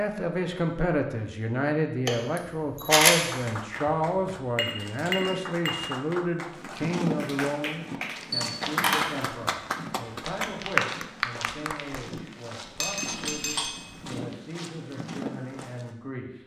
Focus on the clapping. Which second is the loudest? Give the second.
11 s.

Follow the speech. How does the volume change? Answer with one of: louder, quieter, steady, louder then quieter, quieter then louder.
quieter.